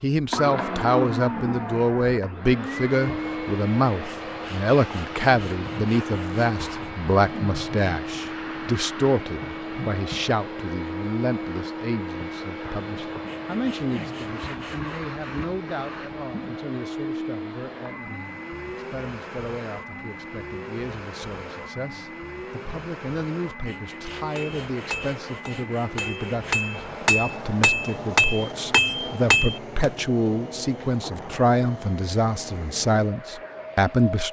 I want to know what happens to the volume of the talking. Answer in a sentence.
The loudness of the talking goes down, then up.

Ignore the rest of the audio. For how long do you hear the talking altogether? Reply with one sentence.
The talking can be heard for 34 seconds in total.